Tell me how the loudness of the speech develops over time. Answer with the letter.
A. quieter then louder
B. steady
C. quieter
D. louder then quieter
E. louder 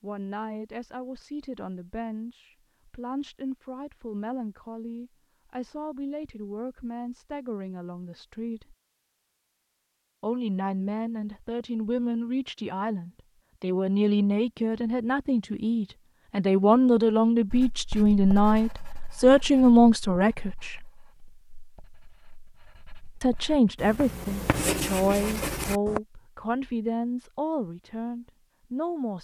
D.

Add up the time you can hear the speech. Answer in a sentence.
The speech can be heard for 25 seconds in total.